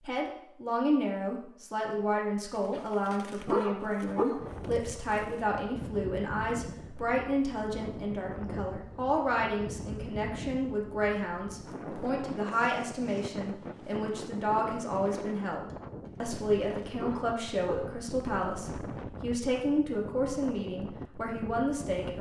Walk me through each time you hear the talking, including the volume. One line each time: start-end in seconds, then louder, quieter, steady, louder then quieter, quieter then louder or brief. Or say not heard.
0.0-22.1 steady.